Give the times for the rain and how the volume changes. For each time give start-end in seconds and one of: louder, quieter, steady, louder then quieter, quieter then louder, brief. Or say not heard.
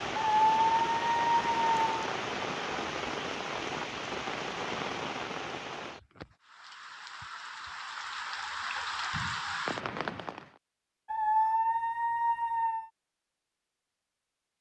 0.0-10.6 quieter then louder.